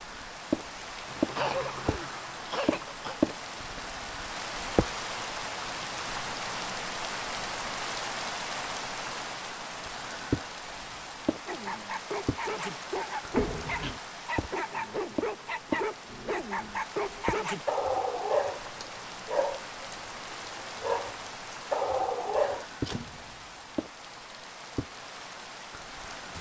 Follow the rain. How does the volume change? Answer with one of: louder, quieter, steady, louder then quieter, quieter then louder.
quieter.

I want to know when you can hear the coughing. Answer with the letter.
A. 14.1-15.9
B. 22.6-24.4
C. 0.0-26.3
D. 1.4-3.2
D.